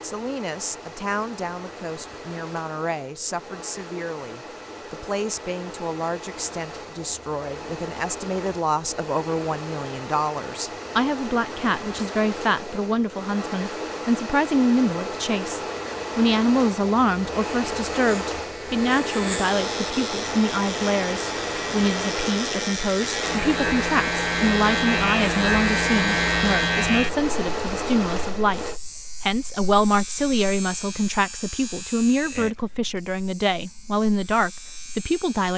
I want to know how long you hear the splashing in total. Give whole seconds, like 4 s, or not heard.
not heard.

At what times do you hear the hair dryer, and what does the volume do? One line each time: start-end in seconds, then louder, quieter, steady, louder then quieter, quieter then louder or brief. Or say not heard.
0.0-28.8 louder.